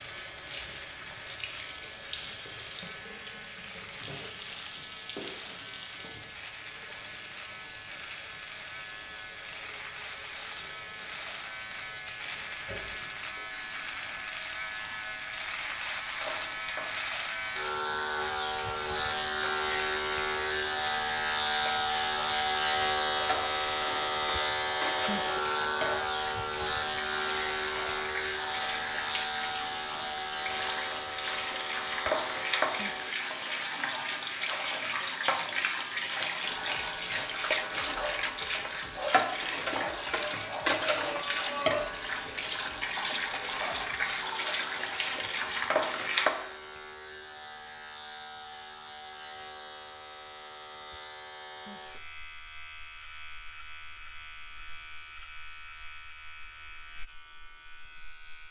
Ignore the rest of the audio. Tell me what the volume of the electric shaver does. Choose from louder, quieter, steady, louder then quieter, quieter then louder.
louder then quieter.